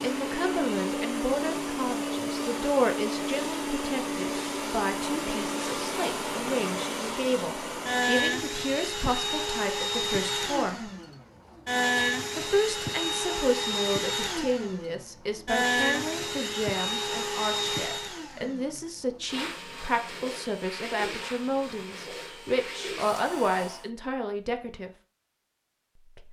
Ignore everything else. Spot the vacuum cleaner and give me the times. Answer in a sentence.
You can hear the vacuum cleaner from 0.0 to 23.9 s.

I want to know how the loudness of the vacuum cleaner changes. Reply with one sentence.
The loudness of the vacuum cleaner goes down.